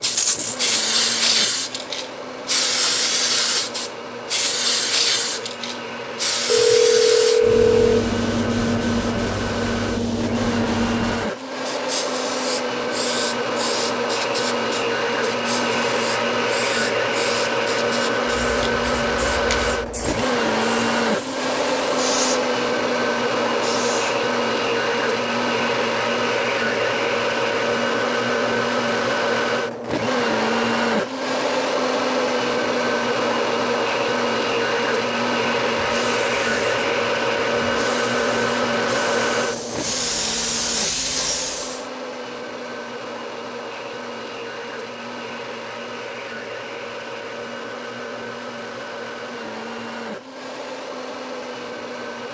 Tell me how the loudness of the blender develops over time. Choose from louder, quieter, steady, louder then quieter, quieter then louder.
louder then quieter.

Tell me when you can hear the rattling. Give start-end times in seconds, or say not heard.
0.0-0.6.